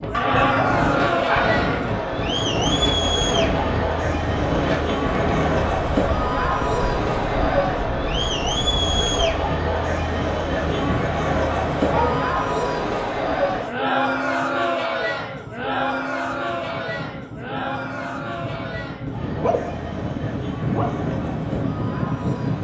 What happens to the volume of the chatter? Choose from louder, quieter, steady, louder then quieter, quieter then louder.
quieter.